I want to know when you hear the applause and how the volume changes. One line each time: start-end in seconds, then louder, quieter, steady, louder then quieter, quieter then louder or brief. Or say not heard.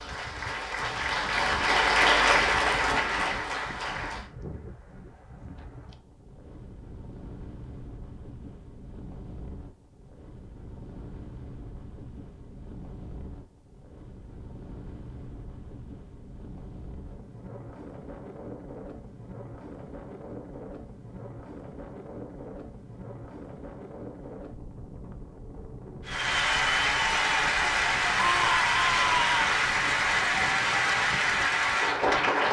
0.0-4.3 louder then quieter
26.1-32.4 steady.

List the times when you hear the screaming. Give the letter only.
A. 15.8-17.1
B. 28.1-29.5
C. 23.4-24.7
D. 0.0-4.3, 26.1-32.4
B.